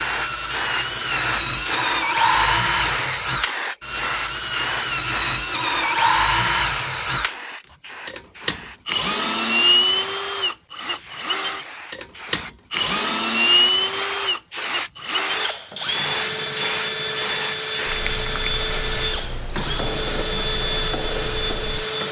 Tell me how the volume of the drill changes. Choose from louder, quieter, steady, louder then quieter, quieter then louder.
steady.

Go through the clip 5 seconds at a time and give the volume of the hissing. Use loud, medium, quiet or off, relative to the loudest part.
loud, medium, medium, loud, medium.